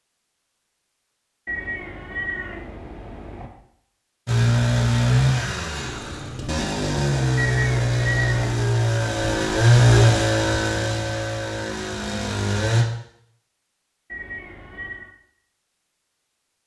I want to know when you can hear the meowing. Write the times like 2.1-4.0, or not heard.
1.4-3.5, 7.3-8.7, 14.1-15.1.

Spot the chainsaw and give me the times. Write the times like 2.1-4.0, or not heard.
4.2-12.8.